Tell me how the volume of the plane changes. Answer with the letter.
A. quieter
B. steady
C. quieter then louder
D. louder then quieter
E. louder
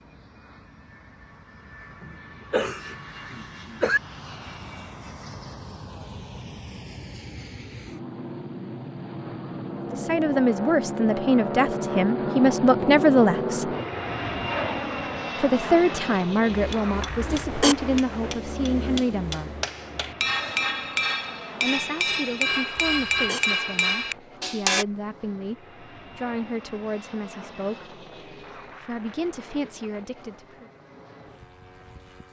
D.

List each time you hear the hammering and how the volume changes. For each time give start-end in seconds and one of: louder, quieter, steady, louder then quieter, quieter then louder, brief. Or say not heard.
16.4-24.9 louder.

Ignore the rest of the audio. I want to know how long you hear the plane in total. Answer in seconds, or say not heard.
32 s.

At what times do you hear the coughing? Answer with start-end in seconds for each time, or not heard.
2.0-4.0, 17.1-17.8, 22.8-23.4.